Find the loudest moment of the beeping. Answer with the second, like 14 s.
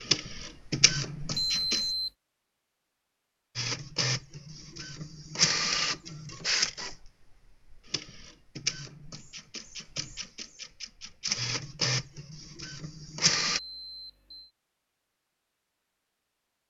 2 s.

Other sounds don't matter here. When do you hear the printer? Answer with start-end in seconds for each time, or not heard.
0.0-1.9, 3.5-13.6.